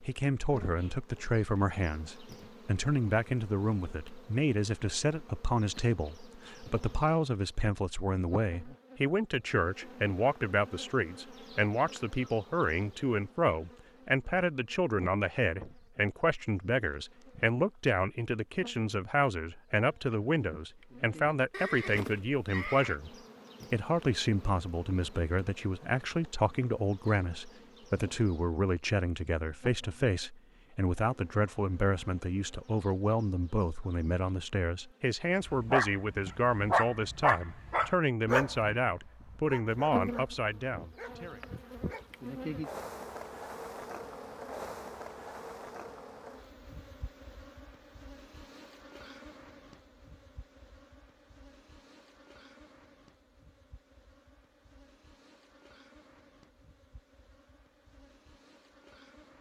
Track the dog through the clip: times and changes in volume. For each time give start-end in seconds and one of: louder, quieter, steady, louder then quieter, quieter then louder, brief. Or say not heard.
35.5-42.4 quieter.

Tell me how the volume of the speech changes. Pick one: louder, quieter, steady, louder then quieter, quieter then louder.
steady.